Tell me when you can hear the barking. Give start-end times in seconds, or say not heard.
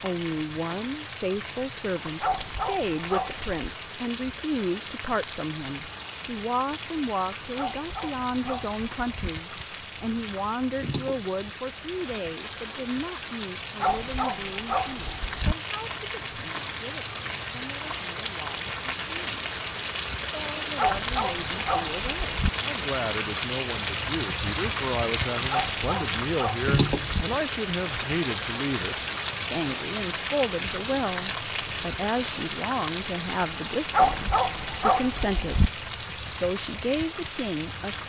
2.2-3.5, 7.5-9.3, 13.8-15.6, 20.8-22.5, 25.4-27.2, 33.9-35.7.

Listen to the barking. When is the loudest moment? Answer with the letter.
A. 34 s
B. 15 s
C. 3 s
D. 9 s
A.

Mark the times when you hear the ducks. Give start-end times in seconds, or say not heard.
not heard.